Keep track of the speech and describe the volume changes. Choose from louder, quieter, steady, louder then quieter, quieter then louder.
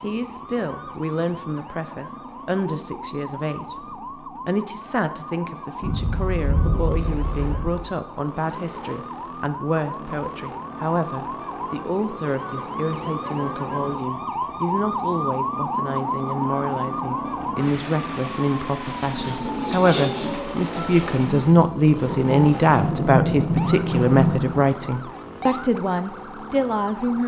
louder.